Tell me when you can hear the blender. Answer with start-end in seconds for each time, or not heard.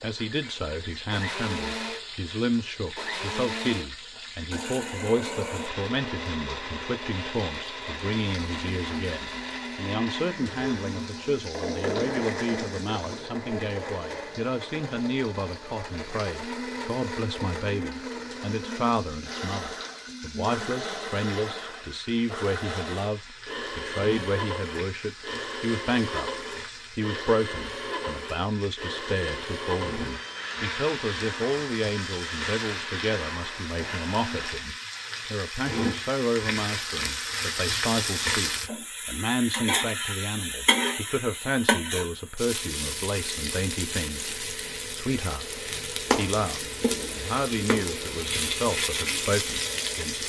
0.0-34.7.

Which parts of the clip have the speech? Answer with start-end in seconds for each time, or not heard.
0.0-50.2.